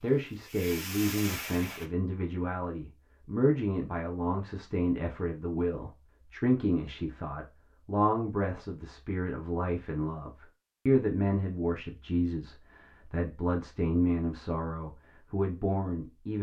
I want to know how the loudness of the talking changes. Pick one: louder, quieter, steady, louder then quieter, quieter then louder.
steady.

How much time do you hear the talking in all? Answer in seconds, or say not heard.
16 s.